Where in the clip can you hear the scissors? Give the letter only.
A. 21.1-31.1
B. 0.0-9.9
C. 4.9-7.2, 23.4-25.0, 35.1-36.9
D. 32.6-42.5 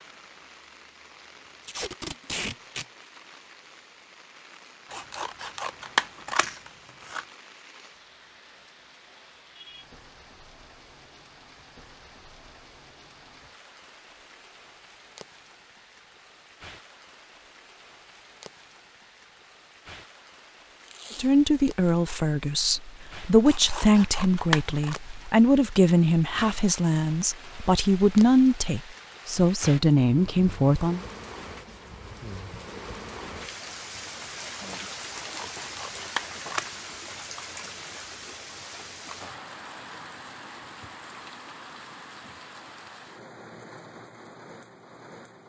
C.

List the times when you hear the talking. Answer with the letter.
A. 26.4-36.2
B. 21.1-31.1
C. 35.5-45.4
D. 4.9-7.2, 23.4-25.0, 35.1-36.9
B.